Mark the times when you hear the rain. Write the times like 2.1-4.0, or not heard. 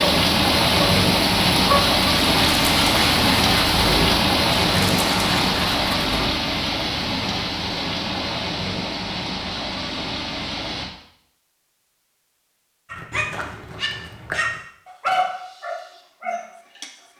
0.0-10.8.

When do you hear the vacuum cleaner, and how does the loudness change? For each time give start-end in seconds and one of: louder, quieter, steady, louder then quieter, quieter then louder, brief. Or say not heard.
not heard.